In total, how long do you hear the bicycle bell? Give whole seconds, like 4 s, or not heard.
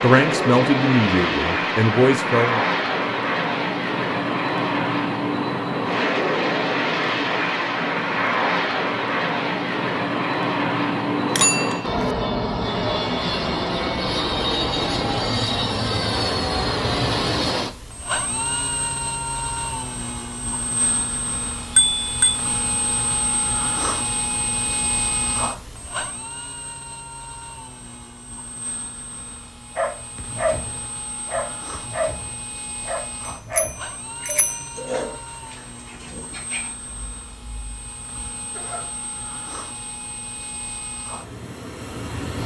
3 s.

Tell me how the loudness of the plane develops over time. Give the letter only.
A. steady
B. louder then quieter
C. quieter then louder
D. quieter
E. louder
D.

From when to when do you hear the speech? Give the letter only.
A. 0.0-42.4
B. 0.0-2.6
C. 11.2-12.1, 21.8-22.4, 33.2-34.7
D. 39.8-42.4
B.